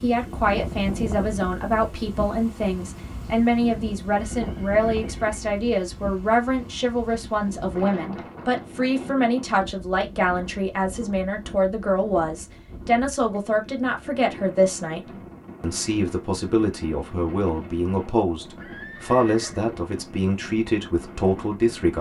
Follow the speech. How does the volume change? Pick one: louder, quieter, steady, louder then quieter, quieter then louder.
steady.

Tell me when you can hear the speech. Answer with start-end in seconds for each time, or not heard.
0.0-21.9.